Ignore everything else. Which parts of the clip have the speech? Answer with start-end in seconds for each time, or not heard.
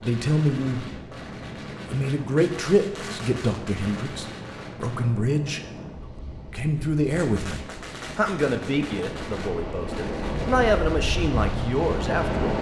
0.0-0.9, 1.9-5.6, 6.4-12.5.